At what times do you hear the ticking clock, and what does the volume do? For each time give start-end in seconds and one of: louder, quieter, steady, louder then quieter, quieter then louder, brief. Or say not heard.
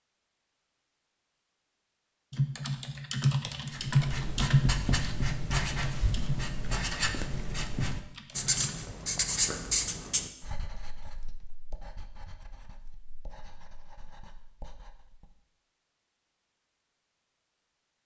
not heard.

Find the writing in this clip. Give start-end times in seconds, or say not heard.
3.7-15.2.